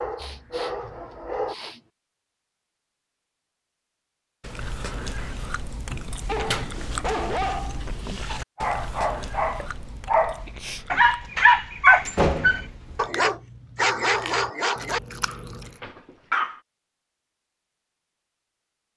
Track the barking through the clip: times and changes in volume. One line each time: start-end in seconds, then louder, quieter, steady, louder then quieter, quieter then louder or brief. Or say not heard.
0.0-1.6 brief
6.2-16.6 louder then quieter.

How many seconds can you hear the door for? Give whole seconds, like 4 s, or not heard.
2 s.